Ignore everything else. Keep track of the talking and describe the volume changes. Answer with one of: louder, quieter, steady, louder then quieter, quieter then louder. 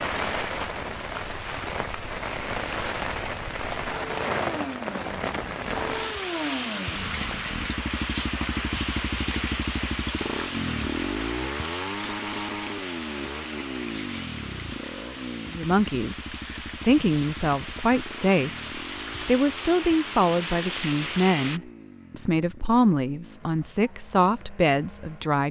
steady.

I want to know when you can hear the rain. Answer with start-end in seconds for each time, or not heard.
0.0-21.6.